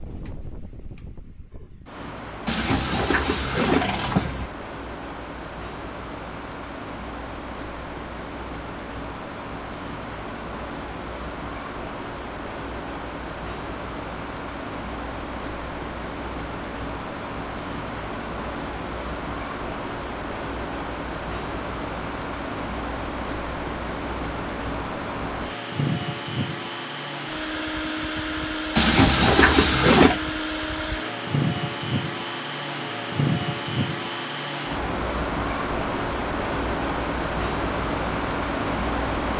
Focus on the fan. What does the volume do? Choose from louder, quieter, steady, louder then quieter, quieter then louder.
louder.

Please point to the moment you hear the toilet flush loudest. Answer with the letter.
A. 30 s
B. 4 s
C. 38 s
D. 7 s
A.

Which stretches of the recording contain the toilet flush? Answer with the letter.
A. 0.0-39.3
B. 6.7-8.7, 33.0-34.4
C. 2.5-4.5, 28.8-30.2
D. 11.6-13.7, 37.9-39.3
C.